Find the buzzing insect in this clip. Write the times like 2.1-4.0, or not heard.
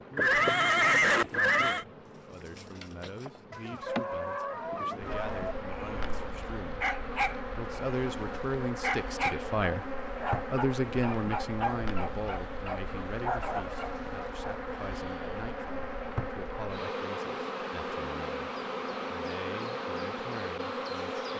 0.0-21.3.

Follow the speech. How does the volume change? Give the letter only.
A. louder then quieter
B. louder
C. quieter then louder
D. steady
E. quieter
A.